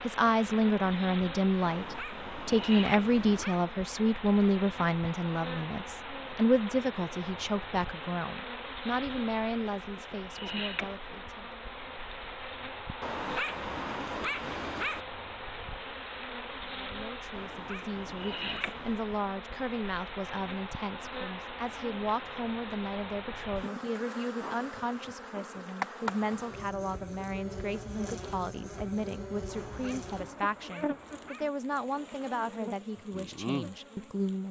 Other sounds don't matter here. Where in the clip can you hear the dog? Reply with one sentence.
The dog can be heard from 1.6 to 3.6 s, from 13.0 to 15.1 s, from 17.3 to 19.1 s and from 29.4 to 31.5 s.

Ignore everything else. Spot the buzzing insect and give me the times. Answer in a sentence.
The buzzing insect can be heard from 0.0 to 34.4 s.